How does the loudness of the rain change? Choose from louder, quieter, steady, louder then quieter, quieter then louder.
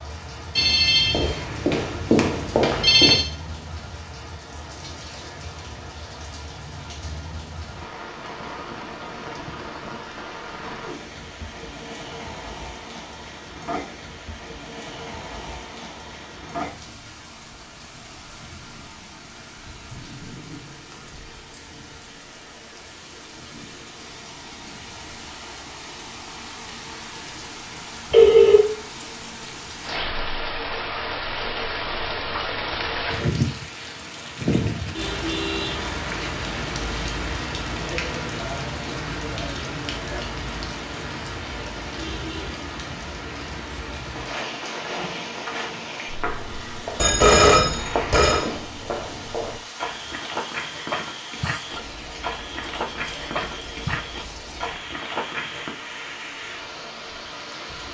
louder then quieter.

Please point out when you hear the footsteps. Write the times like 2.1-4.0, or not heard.
44.1-55.8.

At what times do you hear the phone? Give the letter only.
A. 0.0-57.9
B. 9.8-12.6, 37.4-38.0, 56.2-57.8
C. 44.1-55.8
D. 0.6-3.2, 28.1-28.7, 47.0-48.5
D.